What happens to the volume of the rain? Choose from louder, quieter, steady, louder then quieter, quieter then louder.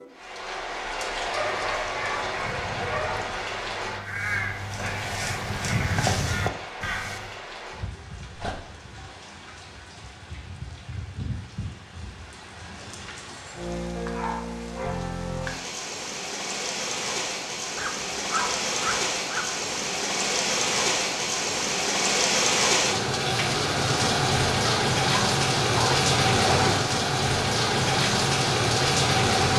quieter then louder.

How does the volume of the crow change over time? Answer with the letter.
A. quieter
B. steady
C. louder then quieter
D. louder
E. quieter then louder
D.